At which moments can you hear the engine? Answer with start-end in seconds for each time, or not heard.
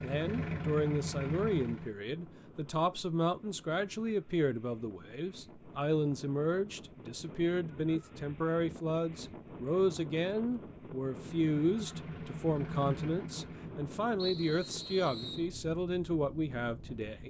0.0-1.9, 11.2-13.8.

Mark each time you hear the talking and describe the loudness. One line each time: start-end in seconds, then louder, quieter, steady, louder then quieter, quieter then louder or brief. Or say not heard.
0.0-17.2 steady.